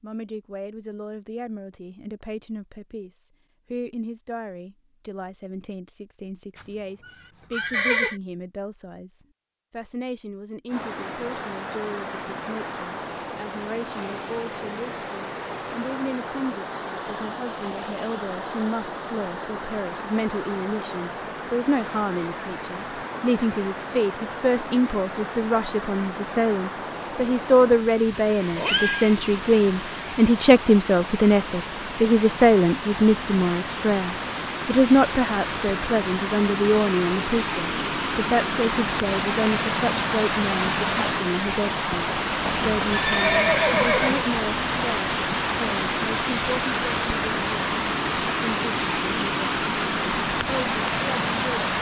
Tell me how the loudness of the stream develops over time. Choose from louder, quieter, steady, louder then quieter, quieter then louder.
louder.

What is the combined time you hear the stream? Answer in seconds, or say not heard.
41 s.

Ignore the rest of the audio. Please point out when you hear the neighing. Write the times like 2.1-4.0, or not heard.
6.5-8.2, 27.7-29.1, 42.5-44.3.